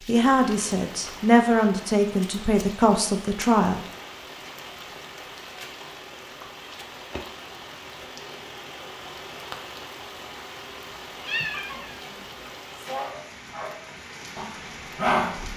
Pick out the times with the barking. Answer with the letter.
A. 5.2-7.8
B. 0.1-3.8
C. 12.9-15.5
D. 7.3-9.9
C.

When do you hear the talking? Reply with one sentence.
The talking can be heard from 0.1 to 3.8 s.